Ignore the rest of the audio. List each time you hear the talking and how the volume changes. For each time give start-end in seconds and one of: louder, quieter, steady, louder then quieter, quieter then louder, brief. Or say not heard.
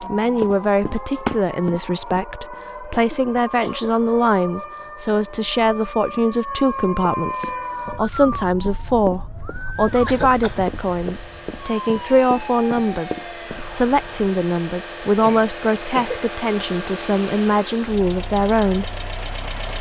0.0-18.9 steady.